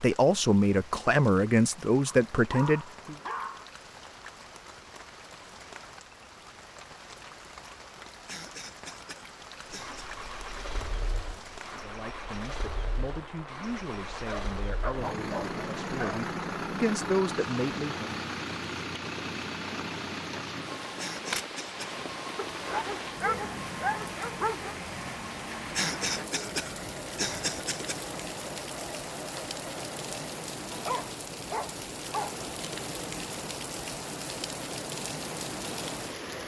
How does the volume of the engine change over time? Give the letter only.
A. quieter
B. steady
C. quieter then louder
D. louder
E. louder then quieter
E.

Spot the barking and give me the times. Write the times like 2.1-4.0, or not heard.
2.0-3.7, 14.2-16.2, 22.4-24.8, 30.7-32.4.